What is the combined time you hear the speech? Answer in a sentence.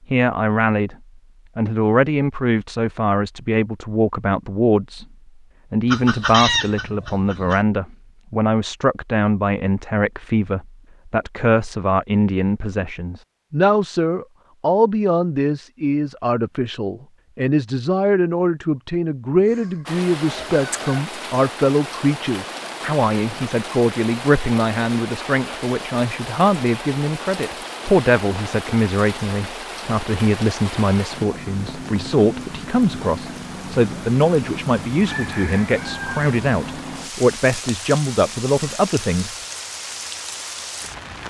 The speech can be heard for 38 seconds in total.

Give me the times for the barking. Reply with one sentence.
You can't hear the barking here.